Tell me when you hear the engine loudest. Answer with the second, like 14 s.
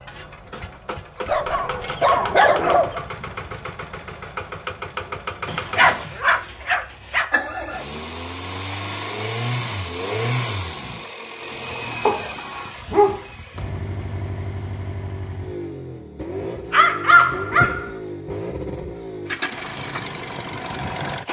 10 s.